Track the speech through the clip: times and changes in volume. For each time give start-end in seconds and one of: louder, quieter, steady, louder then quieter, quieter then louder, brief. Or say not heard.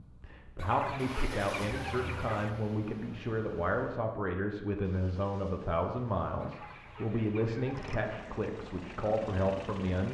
0.0-10.0 steady.